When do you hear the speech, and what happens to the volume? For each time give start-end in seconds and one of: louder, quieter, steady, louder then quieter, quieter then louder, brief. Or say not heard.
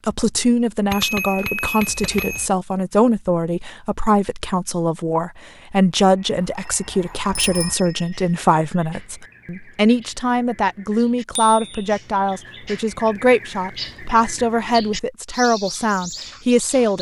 0.1-16.9 steady.